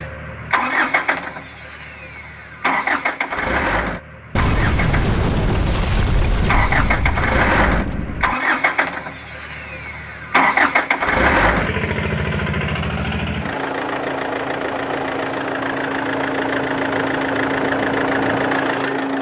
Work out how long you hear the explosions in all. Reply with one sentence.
The explosions can be heard for 4 seconds in total.